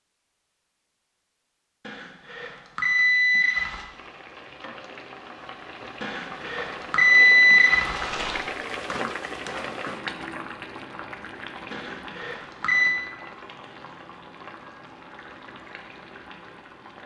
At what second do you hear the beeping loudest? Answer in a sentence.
The loudest moment of the beeping is at 7 seconds.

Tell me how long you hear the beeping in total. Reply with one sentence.
The beeping can be heard for 6 seconds in total.